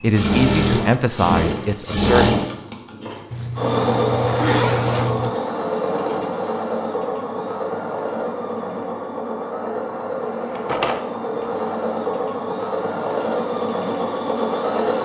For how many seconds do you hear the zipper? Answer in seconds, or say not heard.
2 s.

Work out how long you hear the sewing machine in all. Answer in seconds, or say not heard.
15 s.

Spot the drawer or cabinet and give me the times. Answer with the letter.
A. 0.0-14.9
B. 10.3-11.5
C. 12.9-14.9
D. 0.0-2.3
B.